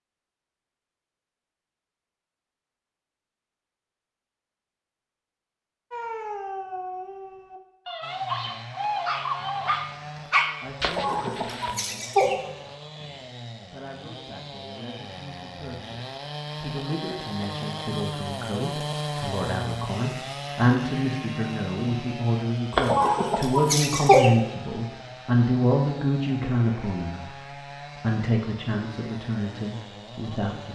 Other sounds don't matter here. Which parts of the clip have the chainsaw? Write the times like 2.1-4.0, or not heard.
8.0-30.7.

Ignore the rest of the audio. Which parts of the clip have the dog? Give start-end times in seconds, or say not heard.
5.9-11.8.